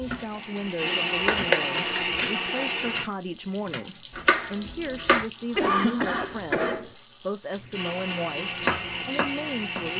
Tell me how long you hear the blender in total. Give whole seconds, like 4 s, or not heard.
5 s.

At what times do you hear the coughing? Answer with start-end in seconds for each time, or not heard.
5.5-6.9.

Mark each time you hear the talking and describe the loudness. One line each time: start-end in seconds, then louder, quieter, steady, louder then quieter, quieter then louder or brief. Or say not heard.
0.0-9.9 steady.